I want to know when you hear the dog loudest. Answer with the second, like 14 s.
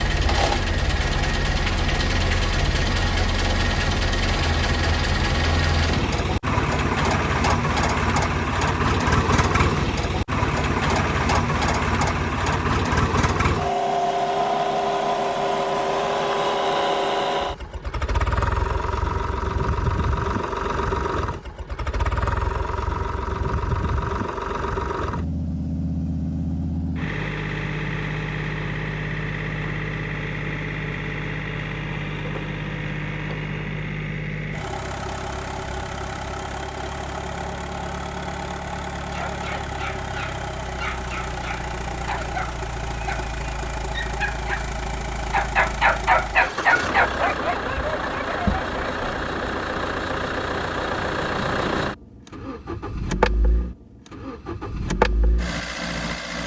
46 s.